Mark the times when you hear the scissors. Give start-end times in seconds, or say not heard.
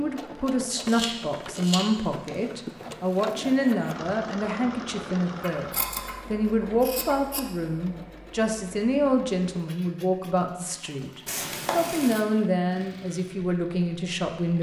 0.7-2.3, 5.4-7.4, 11.2-12.2.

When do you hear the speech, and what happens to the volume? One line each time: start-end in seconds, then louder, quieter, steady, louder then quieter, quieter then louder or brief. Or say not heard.
0.0-14.5 steady.